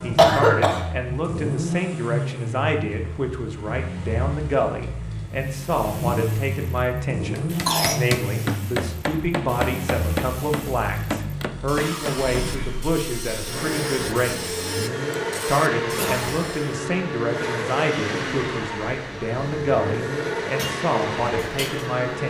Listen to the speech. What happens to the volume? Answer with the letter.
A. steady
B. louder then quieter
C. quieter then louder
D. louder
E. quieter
A.